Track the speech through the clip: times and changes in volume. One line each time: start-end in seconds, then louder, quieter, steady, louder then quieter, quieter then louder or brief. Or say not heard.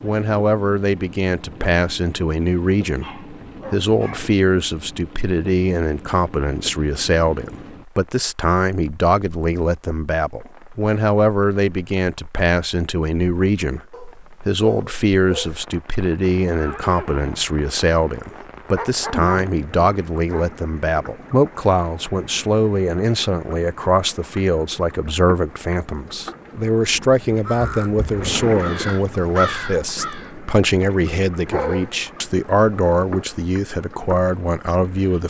0.0-35.2 steady.